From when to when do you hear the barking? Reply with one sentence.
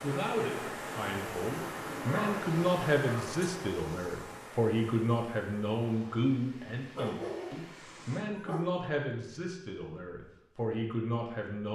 The barking can be heard from 2.0 to 3.5 s and from 7.0 to 8.9 s.